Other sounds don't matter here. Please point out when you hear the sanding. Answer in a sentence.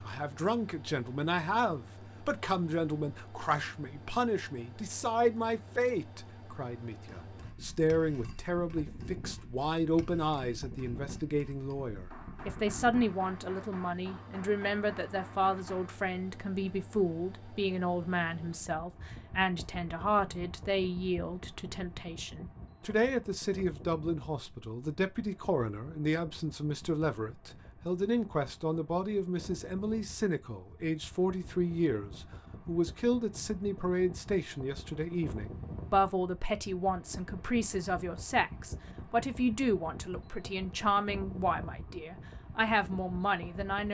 The sanding can't be heard in this clip.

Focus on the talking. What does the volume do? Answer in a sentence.
The loudness of the talking stays about the same.